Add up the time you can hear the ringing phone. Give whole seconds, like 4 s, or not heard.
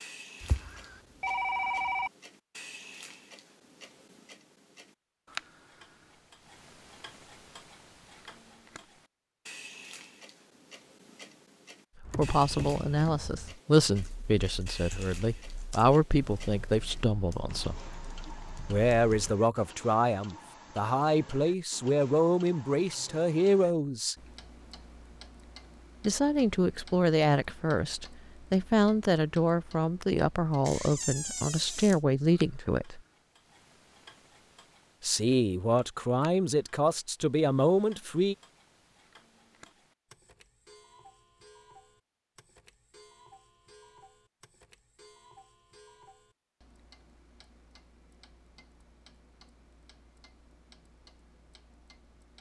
2 s.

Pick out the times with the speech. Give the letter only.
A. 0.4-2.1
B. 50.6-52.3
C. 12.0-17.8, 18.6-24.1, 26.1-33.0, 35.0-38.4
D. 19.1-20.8
C.